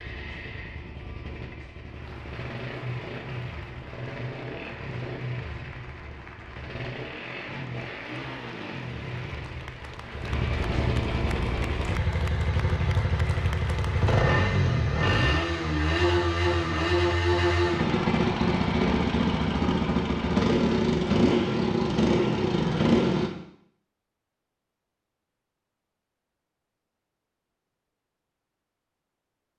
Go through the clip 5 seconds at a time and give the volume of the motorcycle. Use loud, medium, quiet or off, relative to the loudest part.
quiet, quiet, medium, loud, loud, off.